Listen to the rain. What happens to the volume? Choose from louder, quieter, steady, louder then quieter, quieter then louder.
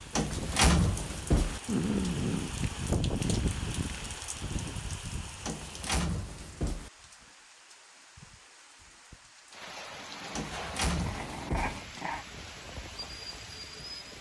quieter then louder.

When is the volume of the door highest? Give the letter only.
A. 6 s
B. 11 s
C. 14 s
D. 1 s
D.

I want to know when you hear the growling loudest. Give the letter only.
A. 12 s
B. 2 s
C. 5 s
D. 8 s
B.